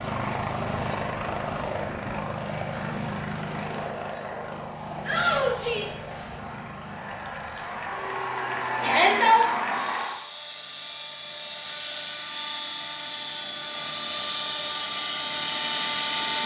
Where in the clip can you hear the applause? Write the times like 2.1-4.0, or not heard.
6.8-10.2.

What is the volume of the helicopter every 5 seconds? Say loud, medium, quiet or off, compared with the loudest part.
loud, medium, medium, loud.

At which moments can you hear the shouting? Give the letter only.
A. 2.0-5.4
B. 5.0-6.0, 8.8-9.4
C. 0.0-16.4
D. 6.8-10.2
B.